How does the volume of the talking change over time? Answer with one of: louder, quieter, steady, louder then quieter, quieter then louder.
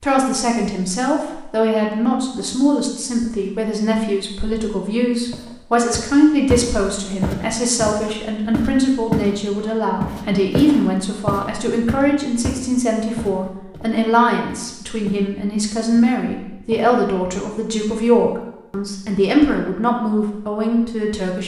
steady.